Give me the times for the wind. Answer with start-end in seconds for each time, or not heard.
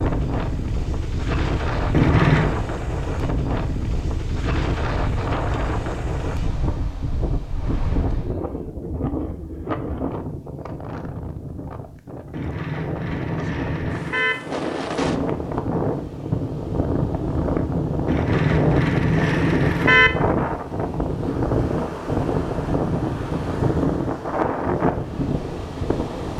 0.0-26.3.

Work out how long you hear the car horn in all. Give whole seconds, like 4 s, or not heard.
5 s.